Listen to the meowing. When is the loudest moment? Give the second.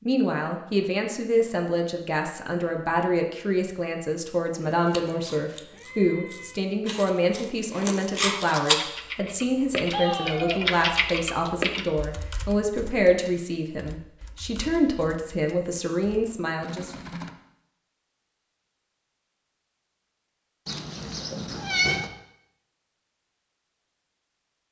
22 s.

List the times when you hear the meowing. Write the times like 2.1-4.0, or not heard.
4.8-6.5, 9.9-11.6, 20.6-22.1.